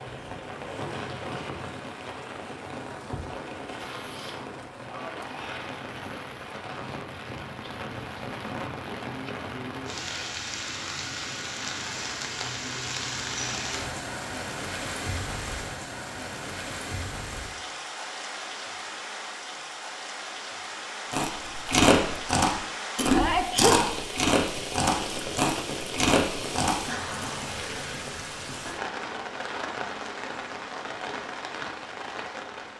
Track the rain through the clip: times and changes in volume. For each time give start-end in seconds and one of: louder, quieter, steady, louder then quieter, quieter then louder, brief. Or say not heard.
0.0-32.7 steady.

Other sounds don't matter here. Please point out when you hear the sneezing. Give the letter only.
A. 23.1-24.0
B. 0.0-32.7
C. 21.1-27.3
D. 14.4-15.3
A.